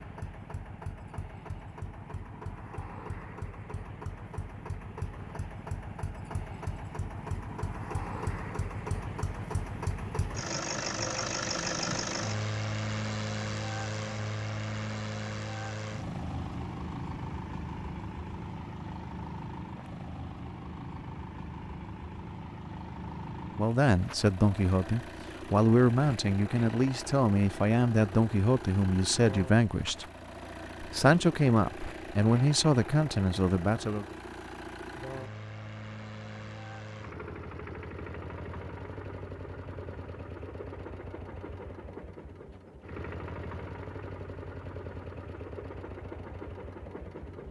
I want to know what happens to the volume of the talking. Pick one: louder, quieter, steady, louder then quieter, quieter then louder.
steady.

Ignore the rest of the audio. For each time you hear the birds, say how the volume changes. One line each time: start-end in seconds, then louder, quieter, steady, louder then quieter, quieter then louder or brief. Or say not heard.
not heard.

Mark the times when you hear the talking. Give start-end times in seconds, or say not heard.
23.6-30.1, 30.8-34.0.